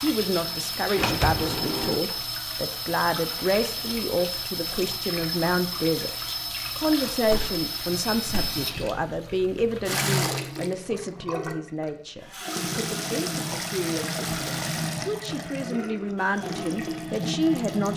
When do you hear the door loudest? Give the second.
1 s.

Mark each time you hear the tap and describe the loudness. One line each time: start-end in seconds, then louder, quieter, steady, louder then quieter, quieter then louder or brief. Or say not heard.
0.0-17.9 steady.